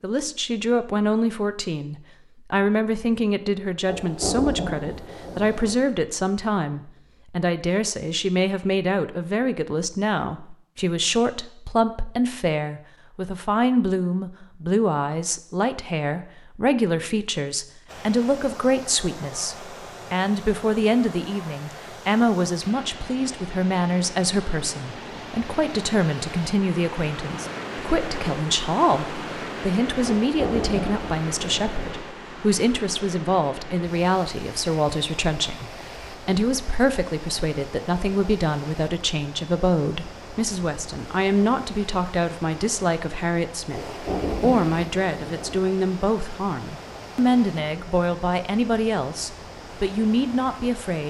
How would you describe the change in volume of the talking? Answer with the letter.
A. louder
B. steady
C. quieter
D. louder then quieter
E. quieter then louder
B.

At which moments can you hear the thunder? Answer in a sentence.
You can hear the thunder from 3.9 to 5.8 s, from 30.0 to 31.9 s and from 43.7 to 45.6 s.